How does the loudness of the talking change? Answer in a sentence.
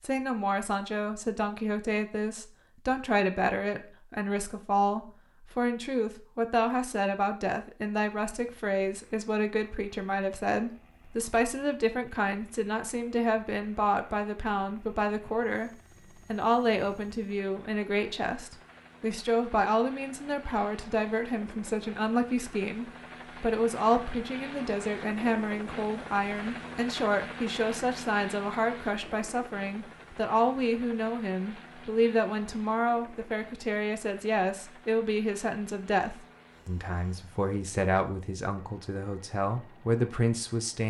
The loudness of the talking stays about the same.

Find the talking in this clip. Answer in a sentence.
The talking can be heard from 0.0 to 40.8 s.